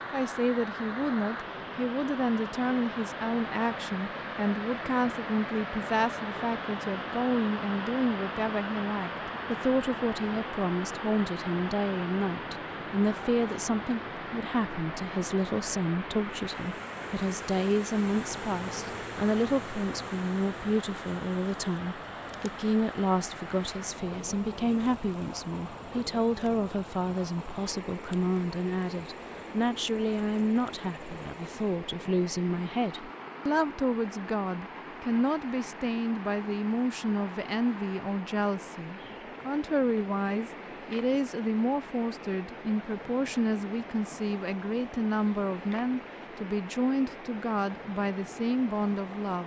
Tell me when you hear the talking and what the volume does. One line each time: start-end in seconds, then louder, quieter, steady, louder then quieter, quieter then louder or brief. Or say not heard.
0.1-49.4 steady.